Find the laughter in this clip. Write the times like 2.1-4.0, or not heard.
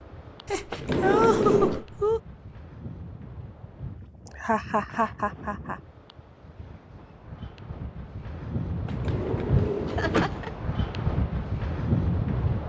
0.5-2.2, 4.3-5.8, 9.8-10.5.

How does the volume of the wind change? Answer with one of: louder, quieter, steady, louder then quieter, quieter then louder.
louder.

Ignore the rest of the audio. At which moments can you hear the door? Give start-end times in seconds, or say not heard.
0.7-1.9, 8.8-10.3.